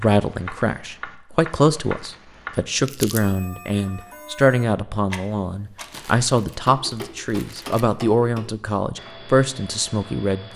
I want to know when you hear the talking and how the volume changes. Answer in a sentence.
The talking can be heard from 0.0 to 10.5 s, at a steady volume.